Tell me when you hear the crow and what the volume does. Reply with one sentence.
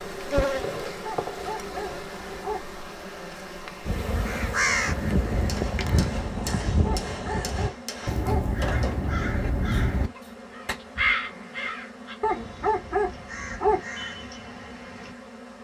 The crow can be heard from 3.9 to 15.2 s, getting quieter.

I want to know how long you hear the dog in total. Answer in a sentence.
You can hear the dog for 5 seconds altogether.